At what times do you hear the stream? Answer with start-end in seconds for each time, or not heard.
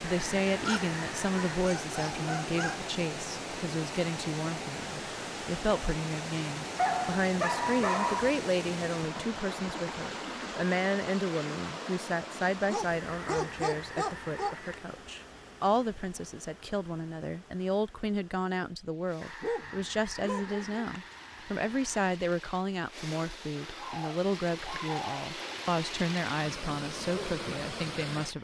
0.0-28.4.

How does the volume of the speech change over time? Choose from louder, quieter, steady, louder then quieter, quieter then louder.
steady.